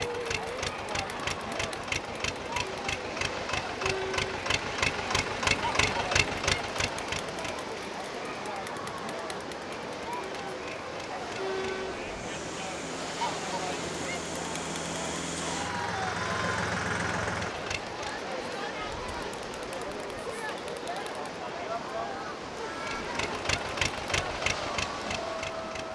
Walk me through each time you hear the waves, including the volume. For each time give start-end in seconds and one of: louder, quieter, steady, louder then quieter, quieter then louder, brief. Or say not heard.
0.0-25.8 steady.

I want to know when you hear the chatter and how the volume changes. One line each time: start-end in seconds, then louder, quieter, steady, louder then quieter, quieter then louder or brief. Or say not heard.
0.0-25.8 steady.